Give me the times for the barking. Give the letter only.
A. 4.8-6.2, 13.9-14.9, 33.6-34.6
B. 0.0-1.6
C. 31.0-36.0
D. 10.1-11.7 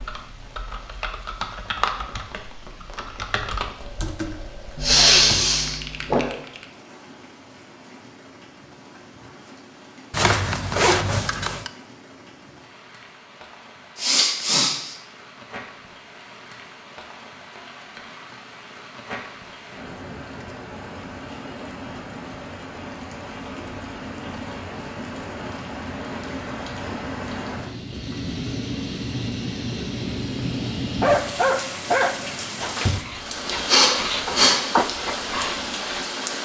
C.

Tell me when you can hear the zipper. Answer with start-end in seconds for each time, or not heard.
10.1-11.7.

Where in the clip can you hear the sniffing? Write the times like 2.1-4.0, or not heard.
4.8-6.2, 13.9-14.9, 33.6-34.6.